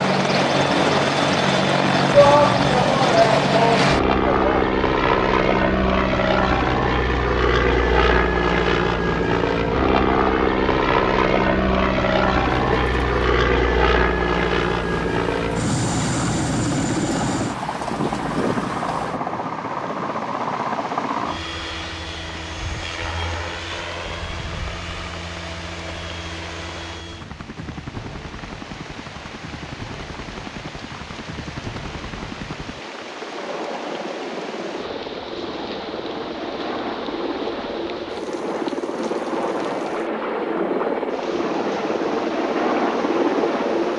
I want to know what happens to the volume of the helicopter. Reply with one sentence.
The loudness of the helicopter goes down, then up.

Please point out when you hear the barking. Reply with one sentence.
You can't hear the barking here.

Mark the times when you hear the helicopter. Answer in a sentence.
You can hear the helicopter from 0.0 to 43.9 s.